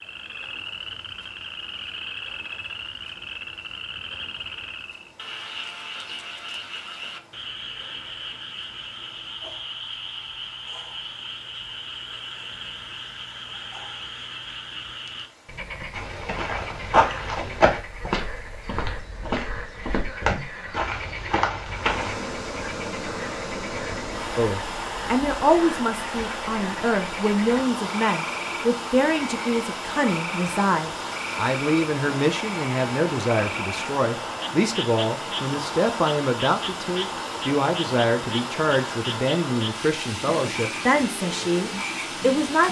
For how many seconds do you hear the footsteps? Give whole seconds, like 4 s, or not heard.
6 s.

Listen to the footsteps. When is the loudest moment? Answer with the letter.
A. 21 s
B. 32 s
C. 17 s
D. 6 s
C.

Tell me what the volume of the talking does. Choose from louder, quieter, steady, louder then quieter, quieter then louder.
steady.